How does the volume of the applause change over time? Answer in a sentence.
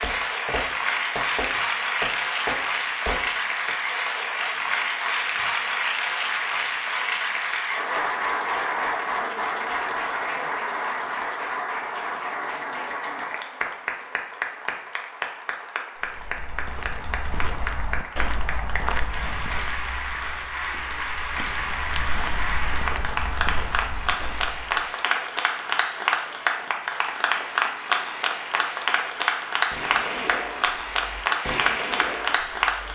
The loudness of the applause goes down, then up.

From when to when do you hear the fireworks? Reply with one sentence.
You can hear the fireworks from 0.0 to 3.7 s and from 29.7 to 32.6 s.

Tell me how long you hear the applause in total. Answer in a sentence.
You can hear the applause for 33 seconds altogether.